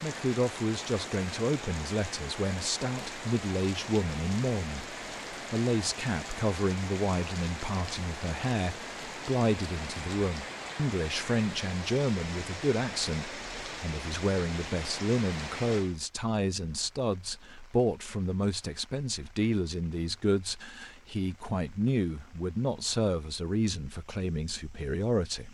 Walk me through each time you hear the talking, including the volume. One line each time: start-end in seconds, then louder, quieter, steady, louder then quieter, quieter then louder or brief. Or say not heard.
0.0-25.4 steady.